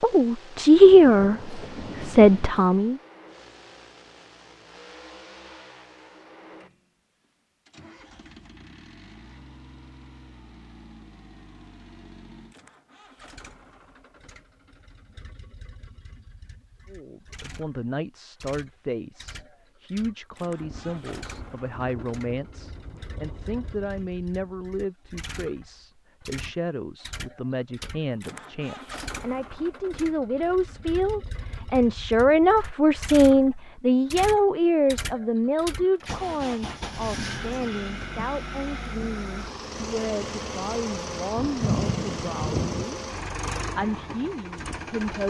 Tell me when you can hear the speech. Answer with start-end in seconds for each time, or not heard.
0.0-3.0, 16.9-45.2.